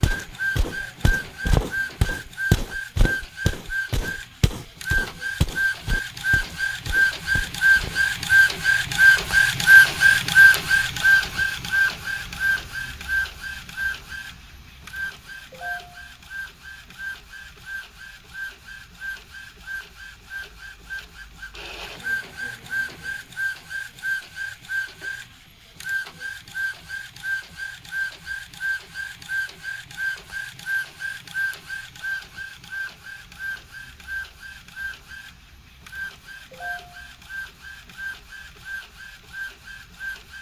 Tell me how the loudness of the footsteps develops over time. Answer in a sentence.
The loudness of the footsteps goes down.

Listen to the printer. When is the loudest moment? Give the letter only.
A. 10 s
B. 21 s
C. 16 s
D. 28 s
A.